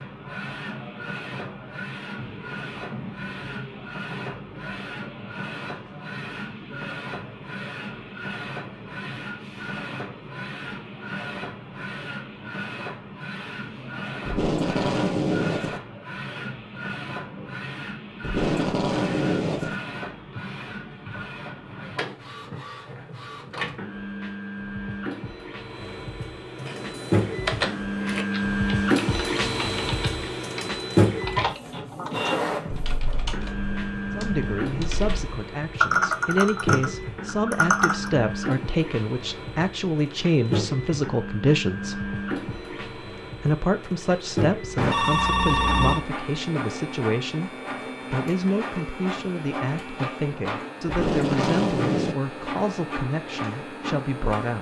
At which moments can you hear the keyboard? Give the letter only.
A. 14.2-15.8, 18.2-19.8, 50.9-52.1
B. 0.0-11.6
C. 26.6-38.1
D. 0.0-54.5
C.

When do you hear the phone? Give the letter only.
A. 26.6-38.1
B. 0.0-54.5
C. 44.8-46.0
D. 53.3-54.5
C.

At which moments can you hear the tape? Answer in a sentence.
You can hear the tape from 14.2 to 15.8 s, from 18.2 to 19.8 s and from 50.9 to 52.1 s.